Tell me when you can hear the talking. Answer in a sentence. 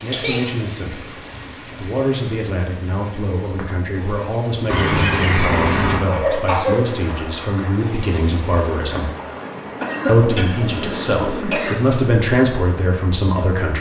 You can hear the talking from 0.0 to 9.1 s and from 10.1 to 13.7 s.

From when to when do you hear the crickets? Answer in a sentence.
The crickets can't be heard in this clip.